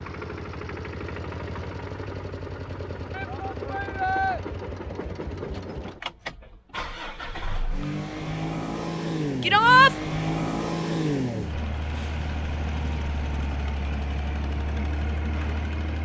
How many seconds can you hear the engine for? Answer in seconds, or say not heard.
16 s.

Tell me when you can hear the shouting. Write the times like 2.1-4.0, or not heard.
3.1-4.4, 9.4-9.9.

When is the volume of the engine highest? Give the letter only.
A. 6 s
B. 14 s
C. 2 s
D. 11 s
D.